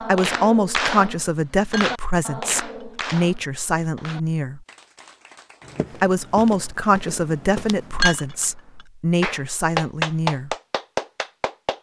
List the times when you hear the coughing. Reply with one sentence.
You can't hear the coughing here.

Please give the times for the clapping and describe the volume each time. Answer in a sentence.
You can hear the clapping from 0.0 to 6.0 s, getting quieter; and briefly from 9.2 to 11.7 s.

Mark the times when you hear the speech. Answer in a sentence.
You can hear the speech from 0.0 to 4.7 s and from 6.0 to 10.6 s.